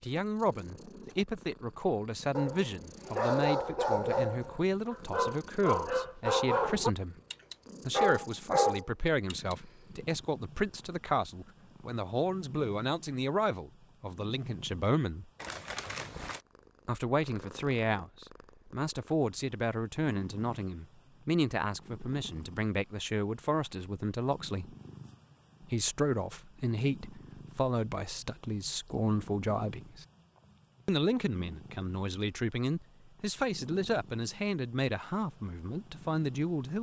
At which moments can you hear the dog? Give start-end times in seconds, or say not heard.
2.4-9.6.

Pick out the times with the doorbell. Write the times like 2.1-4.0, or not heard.
not heard.